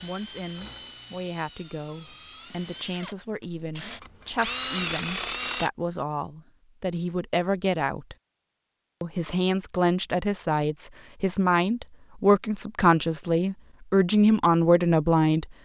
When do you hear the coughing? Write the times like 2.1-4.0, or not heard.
not heard.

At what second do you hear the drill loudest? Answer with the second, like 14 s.
5 s.